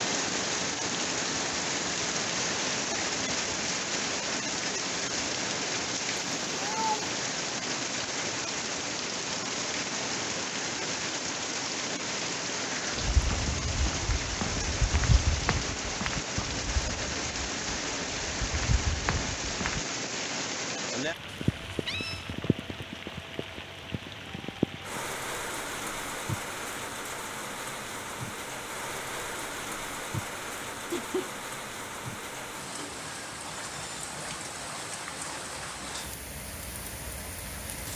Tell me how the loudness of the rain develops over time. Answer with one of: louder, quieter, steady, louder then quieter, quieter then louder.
quieter.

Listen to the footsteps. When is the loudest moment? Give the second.
15 s.